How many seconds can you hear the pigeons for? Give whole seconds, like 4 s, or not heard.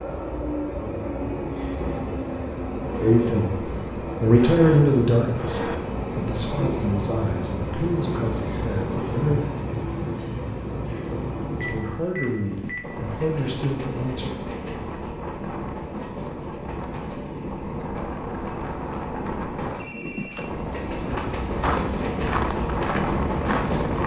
not heard.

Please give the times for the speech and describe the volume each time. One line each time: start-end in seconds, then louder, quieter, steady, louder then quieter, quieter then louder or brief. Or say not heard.
3.0-9.4 quieter
11.6-14.4 brief.